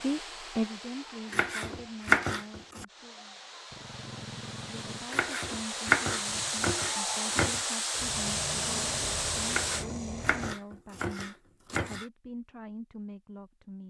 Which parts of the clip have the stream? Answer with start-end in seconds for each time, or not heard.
0.0-9.8.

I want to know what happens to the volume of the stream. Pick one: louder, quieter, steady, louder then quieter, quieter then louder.
louder.